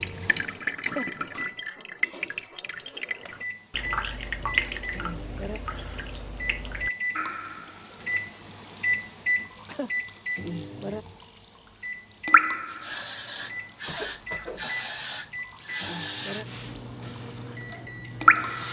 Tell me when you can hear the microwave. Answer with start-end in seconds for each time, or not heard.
0.0-1.7, 3.2-18.6.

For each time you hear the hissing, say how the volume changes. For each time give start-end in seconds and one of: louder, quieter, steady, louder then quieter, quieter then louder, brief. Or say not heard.
12.7-18.6 quieter.